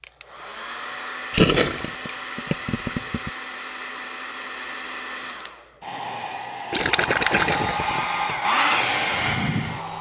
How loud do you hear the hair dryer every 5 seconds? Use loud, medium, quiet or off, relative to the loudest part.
medium, loud.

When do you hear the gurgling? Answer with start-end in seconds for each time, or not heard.
1.3-3.3, 6.7-8.4.